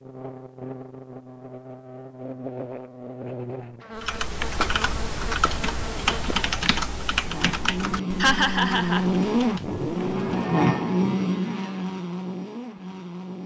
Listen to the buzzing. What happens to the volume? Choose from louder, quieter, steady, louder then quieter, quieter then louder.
louder.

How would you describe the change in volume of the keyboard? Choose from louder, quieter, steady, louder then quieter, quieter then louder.
quieter.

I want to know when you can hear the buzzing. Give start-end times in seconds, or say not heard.
0.0-13.4.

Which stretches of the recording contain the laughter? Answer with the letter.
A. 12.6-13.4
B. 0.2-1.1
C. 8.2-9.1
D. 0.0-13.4
C.